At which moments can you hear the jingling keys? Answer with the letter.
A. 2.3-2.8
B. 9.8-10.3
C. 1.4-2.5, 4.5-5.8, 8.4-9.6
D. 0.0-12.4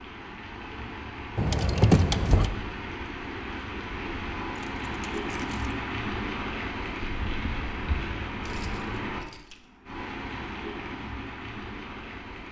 C.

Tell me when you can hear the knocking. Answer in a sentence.
The knocking can be heard from 2.3 to 2.8 s.